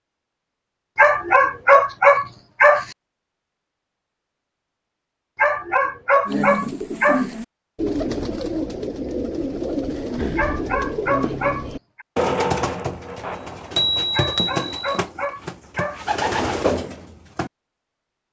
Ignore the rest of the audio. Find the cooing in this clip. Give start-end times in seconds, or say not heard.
6.2-17.5.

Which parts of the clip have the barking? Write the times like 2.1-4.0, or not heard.
0.9-2.9, 5.3-7.2, 10.3-12.1, 14.1-16.0.